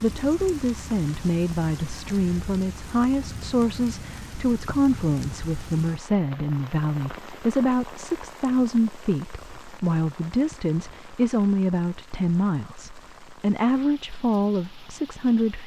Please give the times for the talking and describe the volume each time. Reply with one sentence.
You can hear the talking from 0.0 to 15.6 s, at a steady volume.